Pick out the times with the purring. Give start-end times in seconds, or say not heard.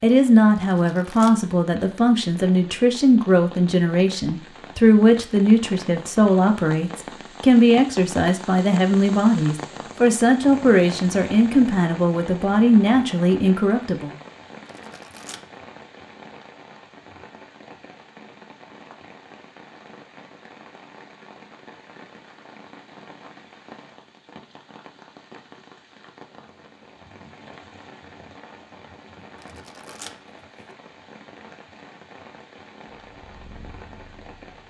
32.9-34.6.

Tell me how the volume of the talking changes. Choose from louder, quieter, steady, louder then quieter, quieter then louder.
steady.